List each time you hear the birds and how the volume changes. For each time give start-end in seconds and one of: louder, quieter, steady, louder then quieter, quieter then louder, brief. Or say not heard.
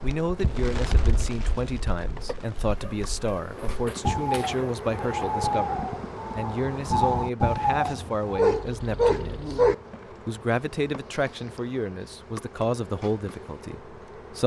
0.0-8.7 quieter then louder.